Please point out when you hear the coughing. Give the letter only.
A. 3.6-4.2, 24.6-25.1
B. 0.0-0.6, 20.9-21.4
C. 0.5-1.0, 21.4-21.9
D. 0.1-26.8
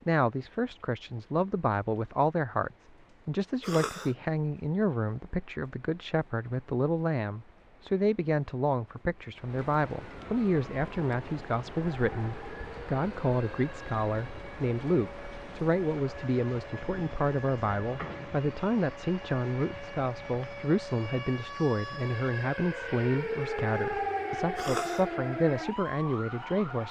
A.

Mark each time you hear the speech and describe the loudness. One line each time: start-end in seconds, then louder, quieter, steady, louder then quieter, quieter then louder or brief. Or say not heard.
0.1-26.8 steady.